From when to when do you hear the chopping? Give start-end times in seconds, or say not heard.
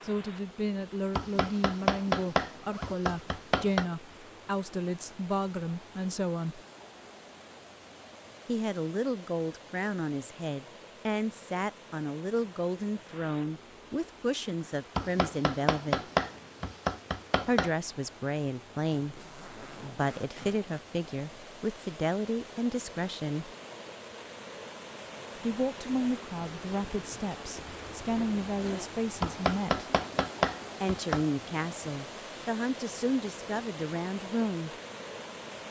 1.1-3.9, 14.9-17.7, 29.2-31.2.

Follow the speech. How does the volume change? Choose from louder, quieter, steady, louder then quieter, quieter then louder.
steady.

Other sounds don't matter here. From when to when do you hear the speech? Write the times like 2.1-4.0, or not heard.
0.0-6.6, 8.4-16.0, 17.4-23.5, 25.4-29.9, 30.8-34.7.